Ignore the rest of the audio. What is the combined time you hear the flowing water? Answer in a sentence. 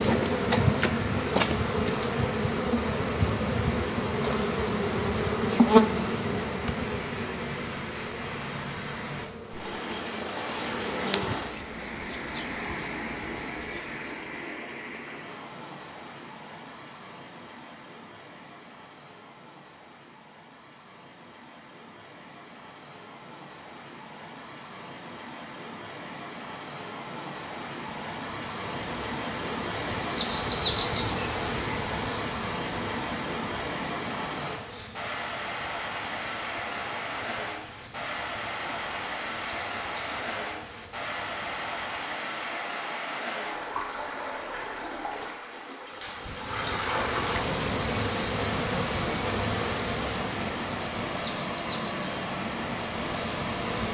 The flowing water can be heard for 54 seconds in total.